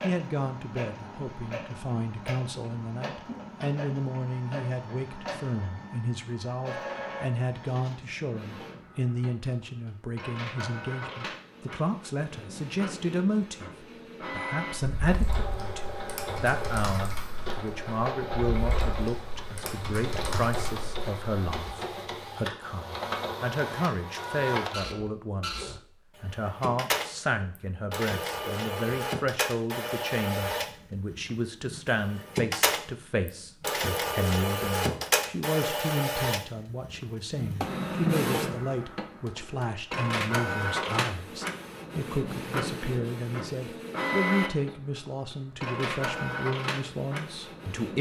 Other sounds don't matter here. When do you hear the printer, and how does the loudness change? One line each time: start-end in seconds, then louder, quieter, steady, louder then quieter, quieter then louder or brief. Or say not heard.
0.0-47.9 louder.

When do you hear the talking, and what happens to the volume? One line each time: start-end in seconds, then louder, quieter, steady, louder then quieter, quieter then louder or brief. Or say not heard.
0.0-47.9 steady.